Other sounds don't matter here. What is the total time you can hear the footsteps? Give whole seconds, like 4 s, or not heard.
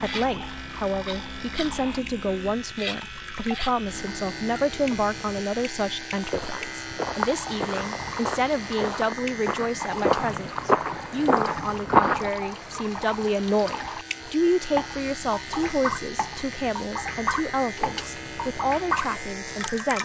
6 s.